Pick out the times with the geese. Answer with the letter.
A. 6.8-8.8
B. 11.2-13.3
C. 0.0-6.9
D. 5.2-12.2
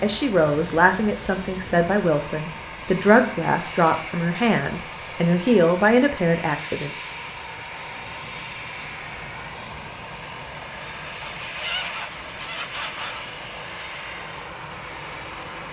B.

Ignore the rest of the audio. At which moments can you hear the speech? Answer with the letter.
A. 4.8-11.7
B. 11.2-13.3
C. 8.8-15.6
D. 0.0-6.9
D.